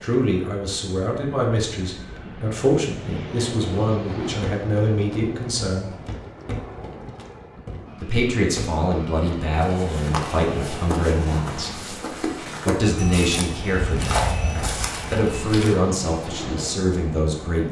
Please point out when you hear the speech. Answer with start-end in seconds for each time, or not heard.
0.0-6.0, 8.0-11.8, 12.7-14.3, 15.1-17.6.